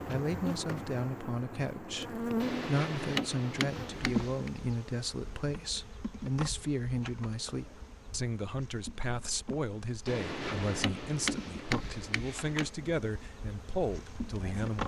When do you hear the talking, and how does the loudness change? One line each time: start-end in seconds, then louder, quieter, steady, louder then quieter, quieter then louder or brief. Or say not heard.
0.1-14.8 steady.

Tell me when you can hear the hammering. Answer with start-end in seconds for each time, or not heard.
2.4-4.5, 10.1-12.7.